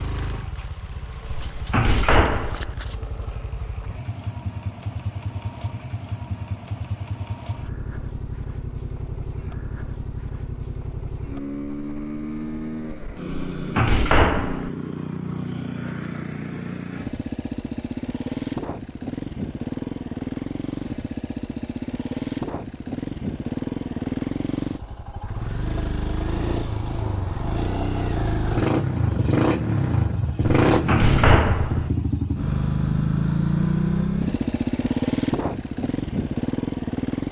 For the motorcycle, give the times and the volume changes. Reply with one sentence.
You can hear the motorcycle from 0.0 to 37.2 s, getting louder.